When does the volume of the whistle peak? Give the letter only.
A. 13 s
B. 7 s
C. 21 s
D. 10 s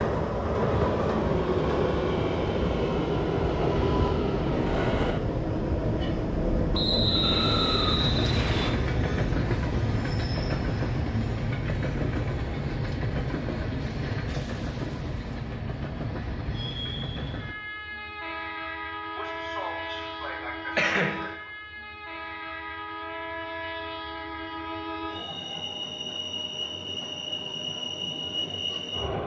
B.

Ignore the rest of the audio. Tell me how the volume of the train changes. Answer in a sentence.
The loudness of the train goes down.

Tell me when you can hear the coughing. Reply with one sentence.
You can hear the coughing from 19.1 to 21.3 s.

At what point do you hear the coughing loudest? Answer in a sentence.
The volume of the coughing peaks at 21 seconds.